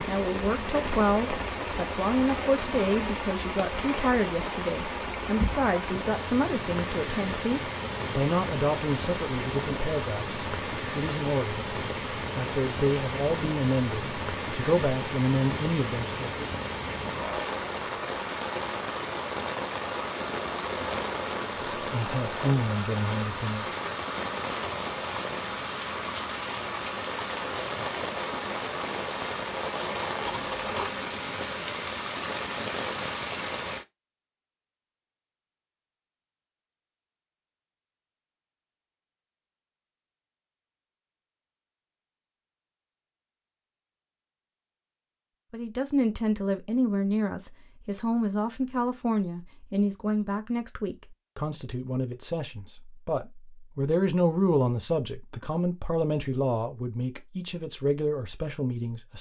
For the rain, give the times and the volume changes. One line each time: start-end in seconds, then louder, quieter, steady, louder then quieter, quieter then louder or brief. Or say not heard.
0.0-33.9 steady.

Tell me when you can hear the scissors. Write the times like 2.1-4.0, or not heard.
30.2-30.9.